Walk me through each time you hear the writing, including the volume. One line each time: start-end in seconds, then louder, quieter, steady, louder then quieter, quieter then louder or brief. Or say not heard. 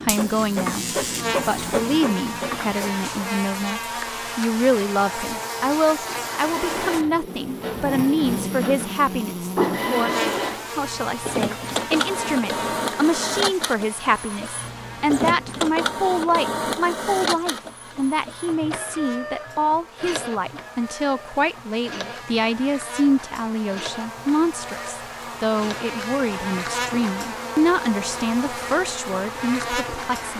not heard.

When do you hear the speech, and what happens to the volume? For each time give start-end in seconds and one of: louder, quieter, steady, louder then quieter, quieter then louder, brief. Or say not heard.
0.0-0.8 brief
1.4-30.3 steady.